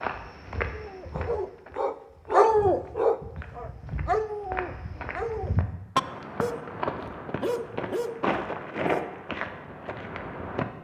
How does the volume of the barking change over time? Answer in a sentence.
The loudness of the barking goes down.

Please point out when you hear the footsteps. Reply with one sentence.
You can hear the footsteps from 0.0 to 10.7 s.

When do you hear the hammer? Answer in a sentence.
The hammer can't be heard in this clip.